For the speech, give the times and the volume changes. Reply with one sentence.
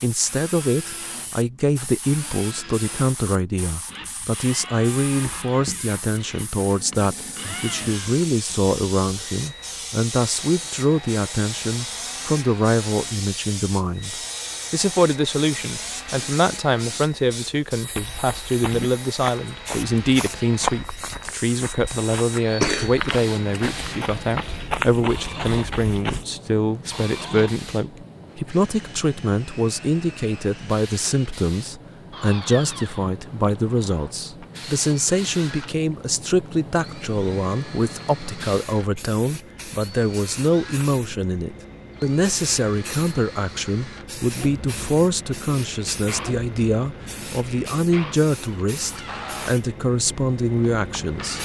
The speech can be heard from 0.0 to 51.4 s, at a steady volume.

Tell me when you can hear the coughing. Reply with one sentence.
You can hear the coughing from 22.3 to 23.1 s.